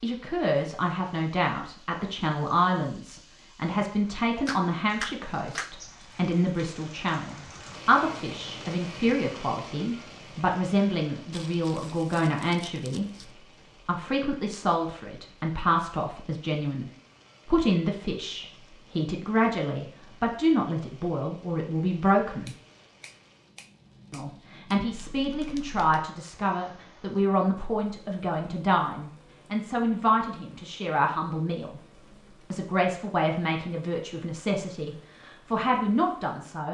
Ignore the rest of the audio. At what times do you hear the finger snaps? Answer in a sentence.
The finger snaps can be heard from 4.5 to 5.8 s and from 22.4 to 24.8 s.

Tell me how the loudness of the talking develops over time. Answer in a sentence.
The volume of the talking stays about the same.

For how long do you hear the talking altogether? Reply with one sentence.
You can hear the talking for 34 seconds altogether.